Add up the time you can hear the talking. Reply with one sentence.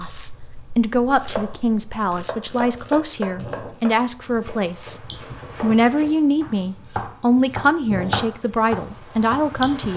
The talking can be heard for 10 seconds in total.